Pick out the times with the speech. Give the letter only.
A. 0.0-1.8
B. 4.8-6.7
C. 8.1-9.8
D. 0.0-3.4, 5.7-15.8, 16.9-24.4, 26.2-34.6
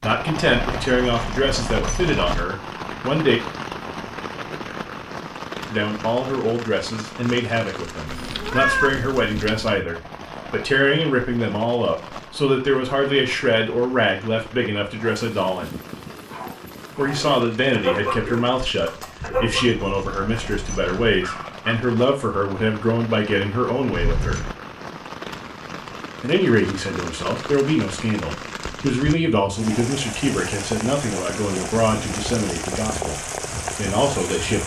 D.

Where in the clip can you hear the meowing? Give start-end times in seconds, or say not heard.
8.1-9.8.